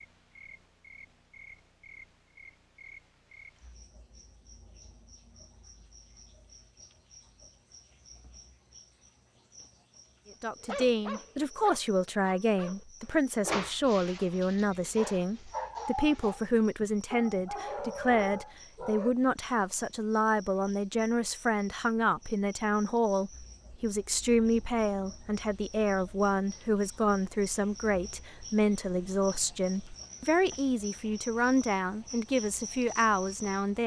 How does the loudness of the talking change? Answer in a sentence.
The volume of the talking stays about the same.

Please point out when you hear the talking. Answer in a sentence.
You can hear the talking from 10.4 to 33.8 s.